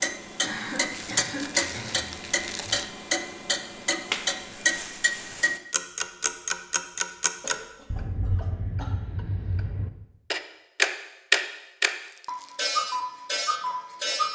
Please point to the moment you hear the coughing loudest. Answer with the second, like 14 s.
1 s.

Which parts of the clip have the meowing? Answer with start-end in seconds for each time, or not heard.
not heard.